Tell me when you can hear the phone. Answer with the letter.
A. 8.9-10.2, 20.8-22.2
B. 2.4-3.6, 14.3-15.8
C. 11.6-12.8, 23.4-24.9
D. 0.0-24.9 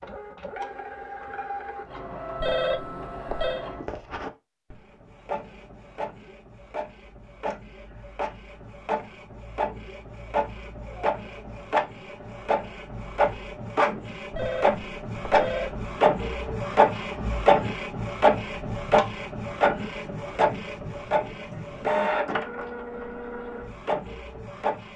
B.